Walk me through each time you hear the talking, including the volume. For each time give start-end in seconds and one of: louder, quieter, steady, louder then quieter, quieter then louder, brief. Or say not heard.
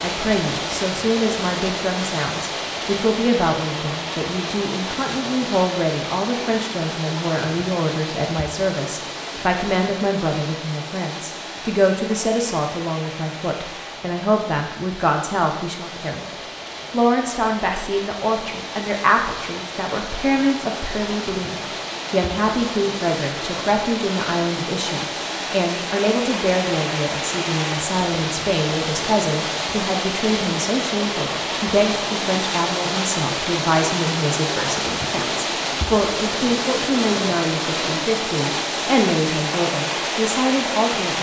0.0-41.1 steady.